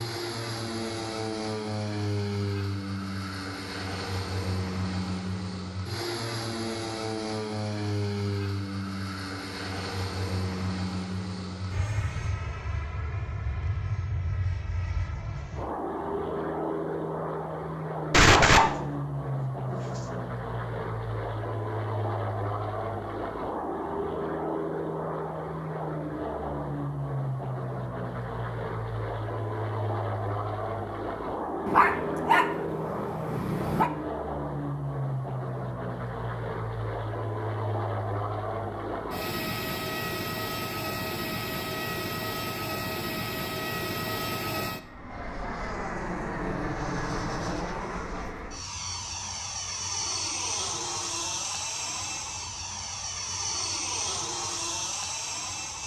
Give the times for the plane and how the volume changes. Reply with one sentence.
The plane can be heard from 0.0 to 55.8 s, at a steady volume.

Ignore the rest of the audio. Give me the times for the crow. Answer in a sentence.
You can't hear the crow here.